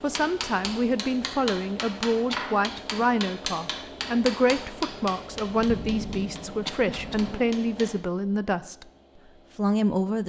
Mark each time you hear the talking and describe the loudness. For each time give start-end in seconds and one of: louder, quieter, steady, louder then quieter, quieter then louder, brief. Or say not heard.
0.0-8.8 steady
9.6-10.2 brief.